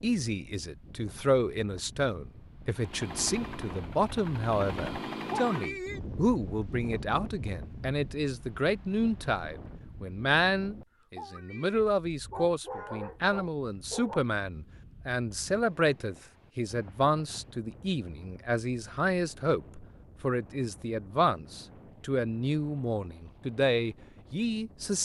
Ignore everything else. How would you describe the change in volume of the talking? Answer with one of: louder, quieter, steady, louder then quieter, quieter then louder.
steady.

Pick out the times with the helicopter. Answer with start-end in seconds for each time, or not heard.
2.8-6.0.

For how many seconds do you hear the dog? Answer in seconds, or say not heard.
2 s.